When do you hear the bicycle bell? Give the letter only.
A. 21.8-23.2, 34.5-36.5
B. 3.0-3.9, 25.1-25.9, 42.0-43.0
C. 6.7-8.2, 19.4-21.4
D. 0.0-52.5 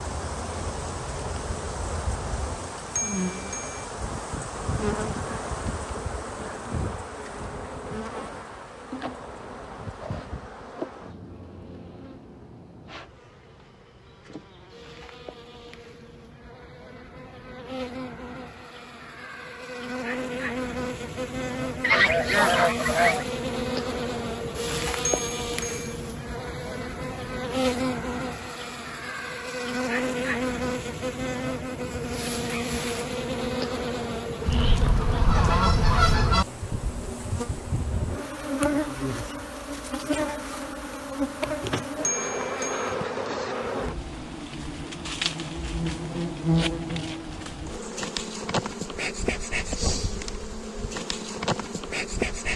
B.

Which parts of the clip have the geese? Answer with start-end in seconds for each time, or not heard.
21.8-23.2, 34.5-36.5.